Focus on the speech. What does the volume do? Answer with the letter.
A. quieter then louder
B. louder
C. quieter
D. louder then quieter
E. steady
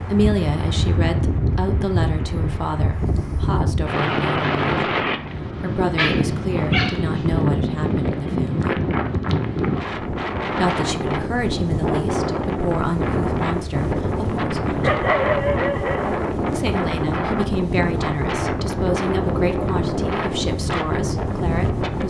E.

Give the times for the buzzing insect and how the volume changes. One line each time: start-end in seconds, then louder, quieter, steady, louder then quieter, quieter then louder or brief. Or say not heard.
not heard.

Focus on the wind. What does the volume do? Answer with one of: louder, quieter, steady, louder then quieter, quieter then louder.
steady.